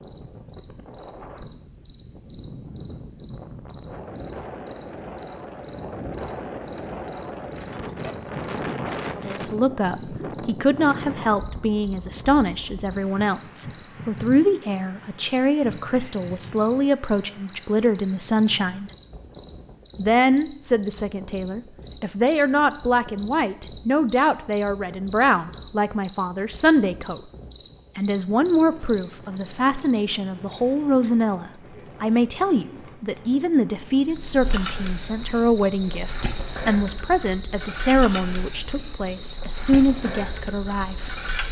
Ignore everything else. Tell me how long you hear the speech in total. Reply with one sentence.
You can hear the speech for 30 seconds altogether.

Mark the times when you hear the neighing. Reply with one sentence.
The neighing can't be heard in this clip.